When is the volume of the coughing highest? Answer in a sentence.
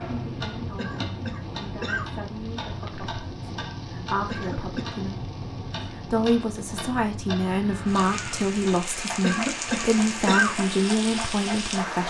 The loudest moment of the coughing is at 10 seconds.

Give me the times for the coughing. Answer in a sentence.
The coughing can be heard from 0.8 to 2.0 s, from 4.2 to 4.9 s and from 9.2 to 10.6 s.